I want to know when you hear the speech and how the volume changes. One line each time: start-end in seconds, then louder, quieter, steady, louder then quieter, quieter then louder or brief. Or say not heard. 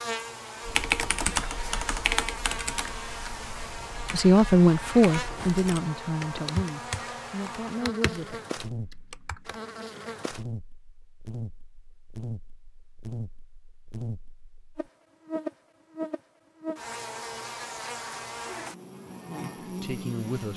4.1-8.4 quieter
19.6-20.5 brief.